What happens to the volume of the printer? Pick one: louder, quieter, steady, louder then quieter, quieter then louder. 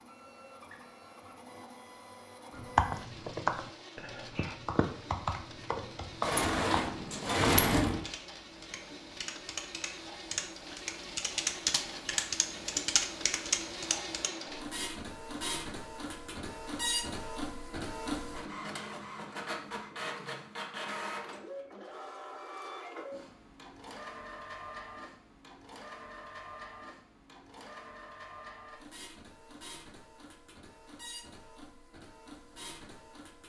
louder then quieter.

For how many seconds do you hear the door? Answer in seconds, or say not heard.
2 s.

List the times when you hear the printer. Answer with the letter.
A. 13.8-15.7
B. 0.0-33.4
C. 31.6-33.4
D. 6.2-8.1
B.